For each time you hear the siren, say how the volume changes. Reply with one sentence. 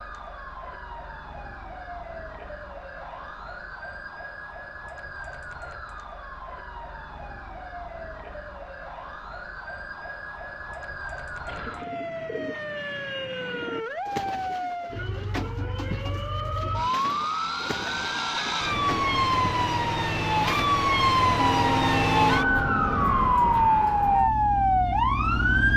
You can hear the siren from 0.0 to 25.7 s, getting louder.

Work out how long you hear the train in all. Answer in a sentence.
The train can be heard for 3 seconds in total.